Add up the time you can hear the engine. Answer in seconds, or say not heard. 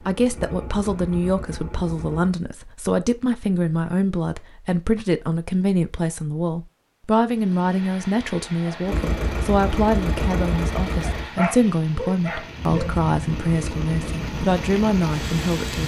7 s.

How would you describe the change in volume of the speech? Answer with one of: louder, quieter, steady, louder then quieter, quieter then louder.
steady.